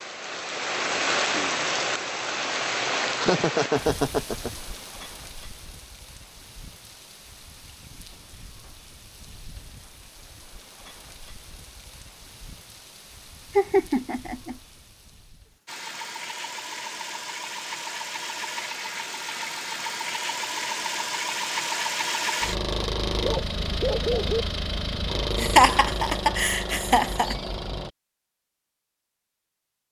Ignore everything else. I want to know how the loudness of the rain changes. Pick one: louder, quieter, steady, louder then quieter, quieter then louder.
quieter.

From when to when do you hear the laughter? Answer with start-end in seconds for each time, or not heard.
3.2-4.5, 13.6-14.6, 25.4-27.4.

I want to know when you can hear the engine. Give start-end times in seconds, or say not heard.
15.7-27.9.